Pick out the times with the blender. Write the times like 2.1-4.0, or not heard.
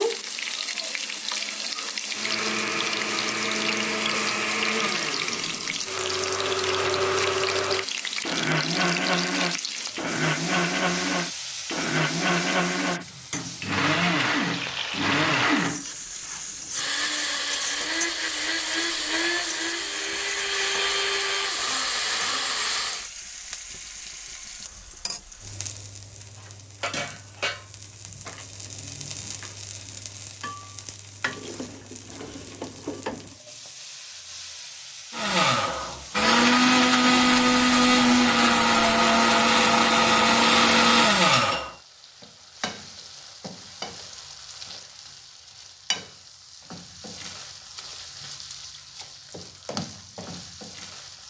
2.1-23.1, 35.1-41.7.